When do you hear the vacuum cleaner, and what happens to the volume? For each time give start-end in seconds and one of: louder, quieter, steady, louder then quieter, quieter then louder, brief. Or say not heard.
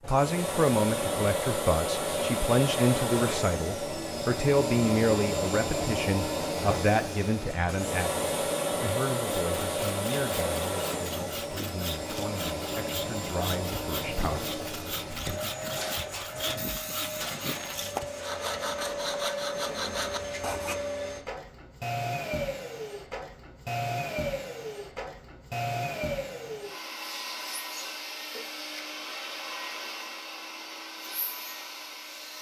0.0-32.3 quieter.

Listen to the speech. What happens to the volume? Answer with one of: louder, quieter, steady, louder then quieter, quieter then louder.
quieter.